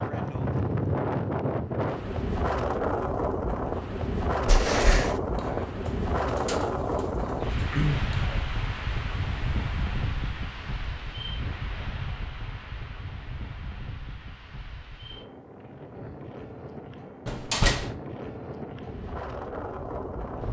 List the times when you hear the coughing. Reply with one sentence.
The coughing can't be heard in this clip.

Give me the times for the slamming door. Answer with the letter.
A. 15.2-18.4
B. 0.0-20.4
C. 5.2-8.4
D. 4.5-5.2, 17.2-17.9
D.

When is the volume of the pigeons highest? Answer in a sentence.
The volume of the pigeons peaks at 8 seconds.